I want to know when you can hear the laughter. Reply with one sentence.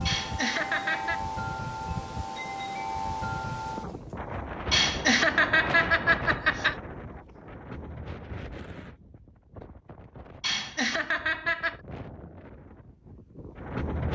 You can hear the laughter from 0.1 to 1.2 s, from 4.7 to 6.8 s and from 10.4 to 11.8 s.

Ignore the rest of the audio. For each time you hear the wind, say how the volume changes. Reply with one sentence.
You can hear the wind from 0.0 to 14.1 s, getting quieter.